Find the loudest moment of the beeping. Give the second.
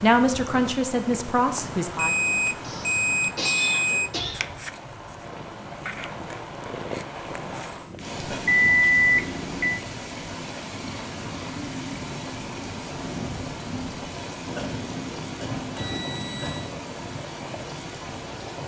9 s.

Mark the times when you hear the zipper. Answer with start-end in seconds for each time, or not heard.
not heard.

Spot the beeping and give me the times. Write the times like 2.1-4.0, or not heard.
1.6-4.2, 8.4-9.6, 15.8-16.7.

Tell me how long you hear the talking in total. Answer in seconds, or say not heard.
2 s.